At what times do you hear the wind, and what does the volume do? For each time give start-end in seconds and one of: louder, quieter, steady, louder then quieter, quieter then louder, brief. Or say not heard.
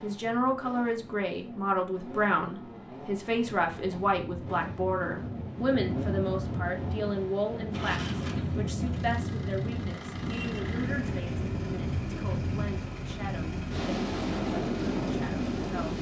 0.1-15.9 louder.